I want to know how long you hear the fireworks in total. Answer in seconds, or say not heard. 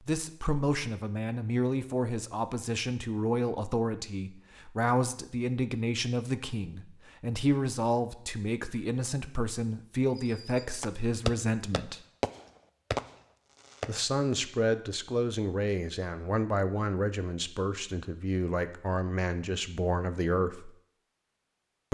4 s.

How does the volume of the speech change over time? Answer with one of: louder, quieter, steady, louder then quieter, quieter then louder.
steady.